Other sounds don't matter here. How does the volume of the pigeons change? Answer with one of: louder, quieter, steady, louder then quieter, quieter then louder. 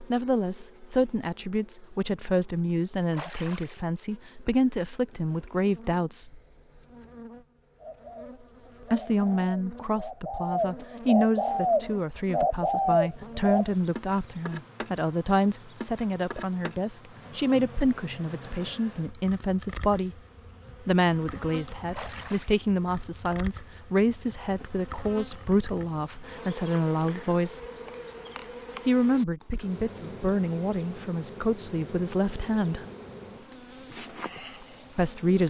louder.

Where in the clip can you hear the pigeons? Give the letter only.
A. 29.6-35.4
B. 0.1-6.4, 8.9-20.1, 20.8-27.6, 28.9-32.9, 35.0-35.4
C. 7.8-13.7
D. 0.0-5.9
C.